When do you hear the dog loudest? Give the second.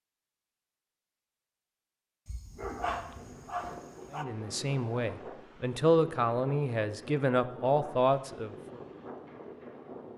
3 s.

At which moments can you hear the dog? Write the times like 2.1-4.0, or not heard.
2.2-4.2.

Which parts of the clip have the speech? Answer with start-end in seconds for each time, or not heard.
4.1-8.8.